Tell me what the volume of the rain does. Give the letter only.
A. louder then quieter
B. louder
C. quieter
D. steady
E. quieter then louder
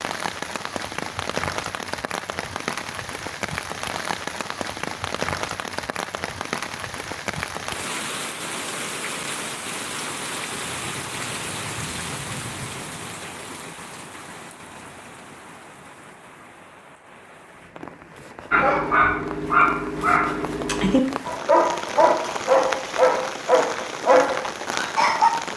E.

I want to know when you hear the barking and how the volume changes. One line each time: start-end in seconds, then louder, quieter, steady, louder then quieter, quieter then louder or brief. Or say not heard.
18.5-25.3 steady.